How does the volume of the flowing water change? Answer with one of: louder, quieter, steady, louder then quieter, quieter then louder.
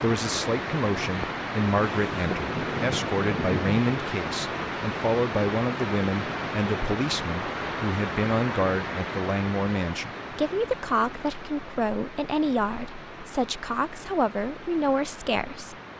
quieter.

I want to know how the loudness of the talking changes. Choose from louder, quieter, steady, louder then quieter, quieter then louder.
steady.